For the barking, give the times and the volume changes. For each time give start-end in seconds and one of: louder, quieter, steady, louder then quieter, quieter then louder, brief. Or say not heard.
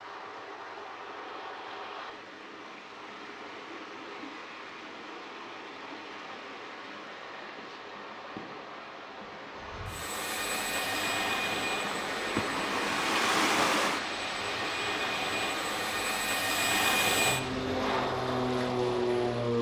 not heard.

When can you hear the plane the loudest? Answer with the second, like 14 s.
17 s.